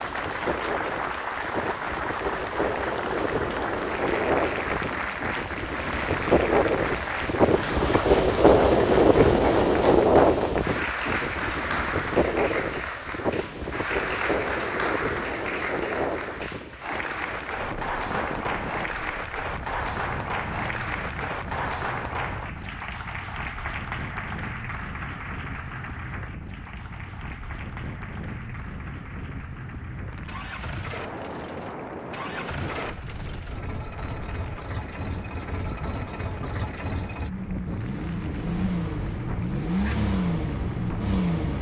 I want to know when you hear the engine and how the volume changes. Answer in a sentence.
The engine can be heard from 29.9 to 41.5 s, getting louder.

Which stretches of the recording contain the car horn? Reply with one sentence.
You can't hear the car horn here.